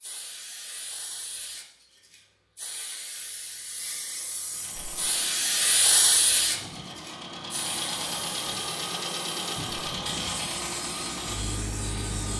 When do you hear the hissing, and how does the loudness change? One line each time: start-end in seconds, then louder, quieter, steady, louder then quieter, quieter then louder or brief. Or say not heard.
0.0-12.3 louder then quieter.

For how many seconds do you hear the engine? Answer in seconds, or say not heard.
8 s.